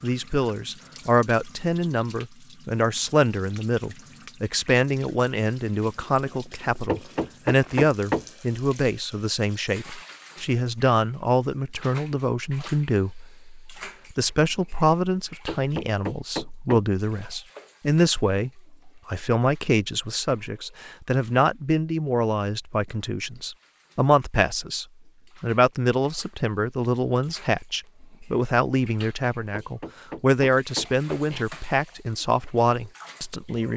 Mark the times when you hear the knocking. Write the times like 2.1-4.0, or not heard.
6.8-8.2, 15.4-16.9, 29.5-31.4.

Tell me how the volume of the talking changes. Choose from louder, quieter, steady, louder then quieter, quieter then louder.
steady.